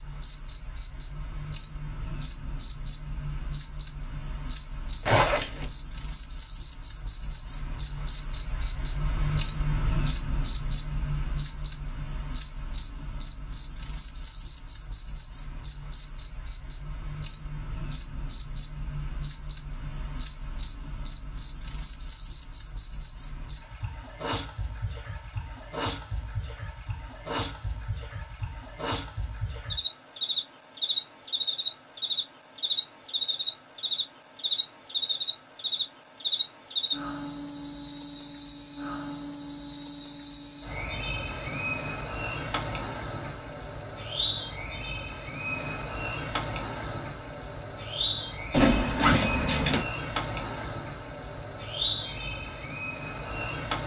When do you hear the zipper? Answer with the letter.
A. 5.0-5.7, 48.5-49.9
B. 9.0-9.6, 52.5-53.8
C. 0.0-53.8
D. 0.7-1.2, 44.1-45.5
A.